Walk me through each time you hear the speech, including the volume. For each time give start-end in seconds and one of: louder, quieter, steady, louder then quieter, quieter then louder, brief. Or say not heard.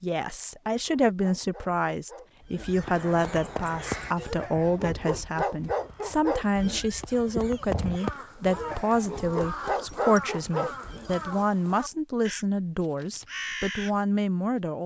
0.0-14.8 steady.